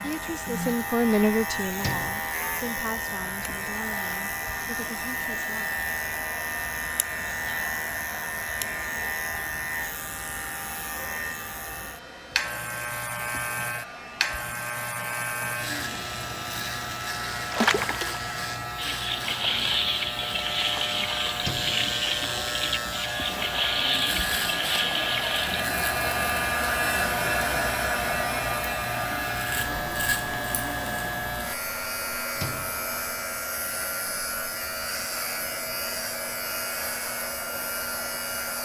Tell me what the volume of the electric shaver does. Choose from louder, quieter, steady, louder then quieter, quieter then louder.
steady.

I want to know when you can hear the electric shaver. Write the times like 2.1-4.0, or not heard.
0.0-38.6.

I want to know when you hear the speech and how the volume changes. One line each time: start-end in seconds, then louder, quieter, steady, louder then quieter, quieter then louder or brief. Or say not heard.
0.0-5.8 quieter.